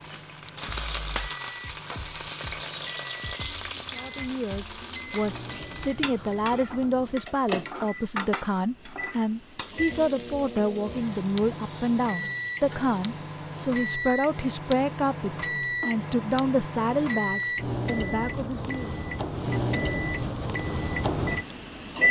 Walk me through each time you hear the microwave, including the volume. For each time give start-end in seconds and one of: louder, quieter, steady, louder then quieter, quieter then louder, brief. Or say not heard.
0.0-22.0 louder.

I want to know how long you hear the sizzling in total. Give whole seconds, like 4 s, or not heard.
22 s.